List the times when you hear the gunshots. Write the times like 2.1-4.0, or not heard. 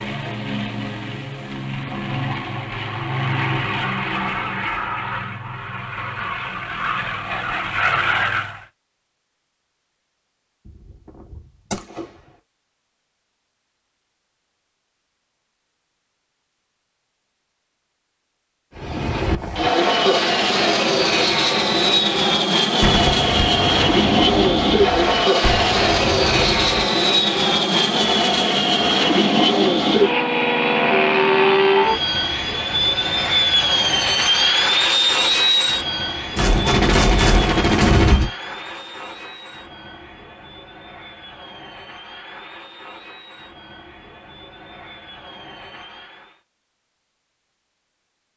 10.7-12.1, 22.8-26.9, 36.4-38.2.